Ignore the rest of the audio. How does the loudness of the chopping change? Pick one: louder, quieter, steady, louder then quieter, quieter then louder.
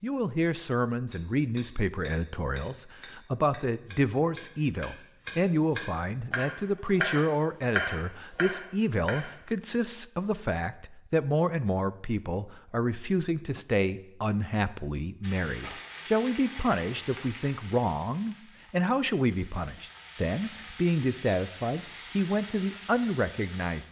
louder.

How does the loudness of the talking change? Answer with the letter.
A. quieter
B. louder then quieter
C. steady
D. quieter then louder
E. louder
C.